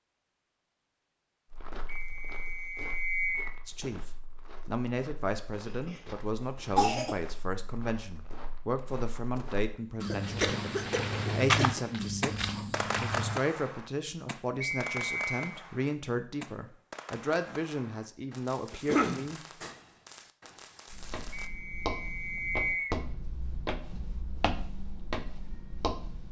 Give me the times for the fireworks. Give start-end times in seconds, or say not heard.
10.2-21.5.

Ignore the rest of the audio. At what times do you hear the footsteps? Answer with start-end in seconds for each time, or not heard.
1.5-13.4, 20.9-26.2.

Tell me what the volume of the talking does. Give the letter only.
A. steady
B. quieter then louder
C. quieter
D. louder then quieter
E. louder
A.